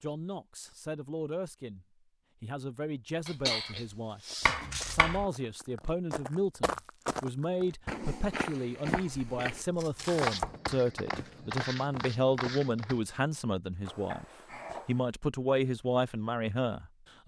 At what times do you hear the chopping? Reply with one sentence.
You can hear the chopping from 4.5 to 5.2 s and from 8.8 to 10.6 s.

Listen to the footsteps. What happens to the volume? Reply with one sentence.
The volume of the footsteps goes up.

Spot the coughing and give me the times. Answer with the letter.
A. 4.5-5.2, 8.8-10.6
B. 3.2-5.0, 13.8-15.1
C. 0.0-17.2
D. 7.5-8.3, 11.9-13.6
B.